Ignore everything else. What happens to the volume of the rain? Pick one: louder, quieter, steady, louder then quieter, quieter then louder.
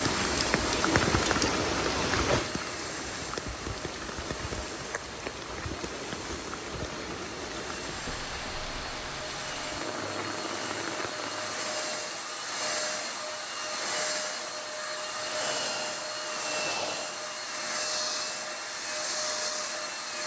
quieter.